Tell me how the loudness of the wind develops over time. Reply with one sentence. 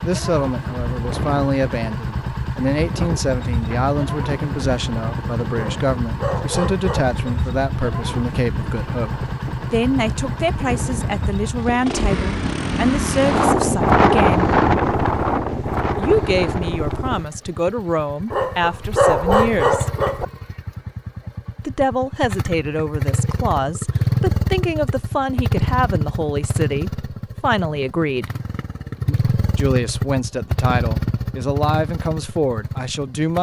The volume of the wind goes up.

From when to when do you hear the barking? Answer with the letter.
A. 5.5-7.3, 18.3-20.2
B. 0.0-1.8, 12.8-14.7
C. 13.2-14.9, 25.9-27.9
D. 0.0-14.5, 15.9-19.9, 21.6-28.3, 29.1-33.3
A.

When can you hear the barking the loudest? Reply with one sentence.
The loudest moment of the barking is at 19 seconds.